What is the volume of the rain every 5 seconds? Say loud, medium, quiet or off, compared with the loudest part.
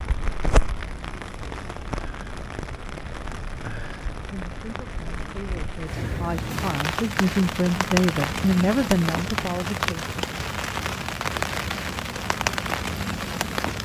medium, loud, loud.